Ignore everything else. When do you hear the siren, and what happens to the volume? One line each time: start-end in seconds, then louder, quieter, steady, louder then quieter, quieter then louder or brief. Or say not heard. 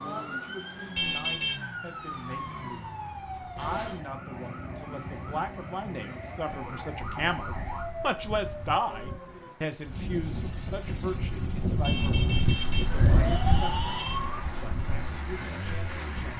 0.0-9.6 steady
12.8-14.4 brief.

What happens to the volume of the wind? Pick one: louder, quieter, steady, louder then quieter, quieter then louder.
louder then quieter.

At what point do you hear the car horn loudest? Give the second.
1 s.